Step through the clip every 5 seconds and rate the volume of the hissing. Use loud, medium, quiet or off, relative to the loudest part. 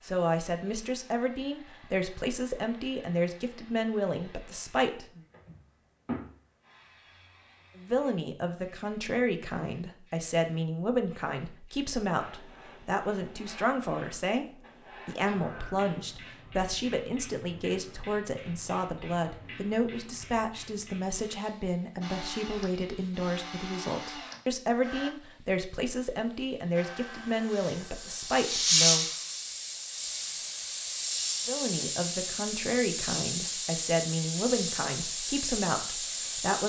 quiet, quiet, quiet, quiet, quiet, loud, loud, loud.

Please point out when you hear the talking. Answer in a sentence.
The talking can be heard from 0.0 to 5.2 s, from 7.8 to 29.1 s and from 31.4 to 36.6 s.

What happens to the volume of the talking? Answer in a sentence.
The volume of the talking stays about the same.